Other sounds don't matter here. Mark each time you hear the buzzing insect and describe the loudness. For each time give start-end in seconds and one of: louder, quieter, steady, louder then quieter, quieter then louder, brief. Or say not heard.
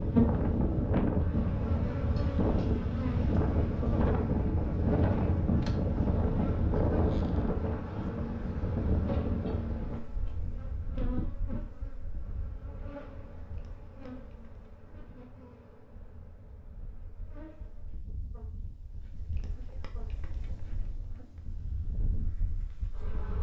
0.0-23.3 quieter.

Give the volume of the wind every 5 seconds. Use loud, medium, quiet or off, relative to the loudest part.
loud, loud, quiet, quiet, quiet.